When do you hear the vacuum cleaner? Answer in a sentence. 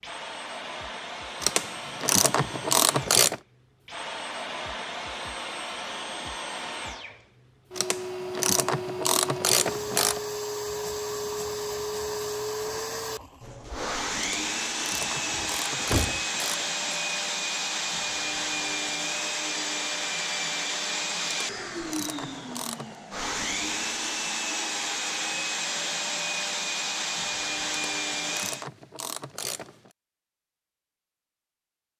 The vacuum cleaner can be heard from 0.0 to 28.6 s.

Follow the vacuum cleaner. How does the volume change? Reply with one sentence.
The loudness of the vacuum cleaner goes up.